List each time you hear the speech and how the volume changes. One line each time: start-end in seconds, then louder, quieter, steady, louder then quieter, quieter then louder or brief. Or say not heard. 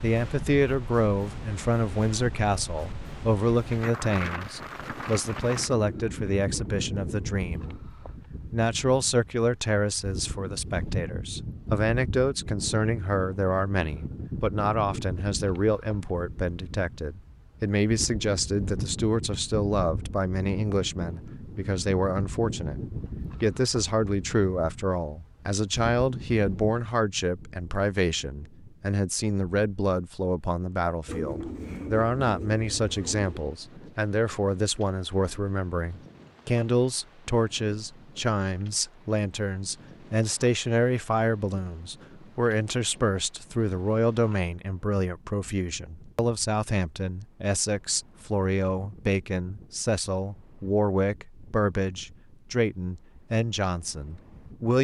0.0-54.7 steady.